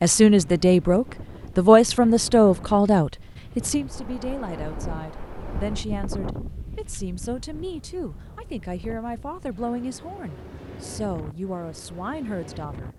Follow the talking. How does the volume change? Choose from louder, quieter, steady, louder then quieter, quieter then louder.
quieter.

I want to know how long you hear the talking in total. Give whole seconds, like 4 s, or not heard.
13 s.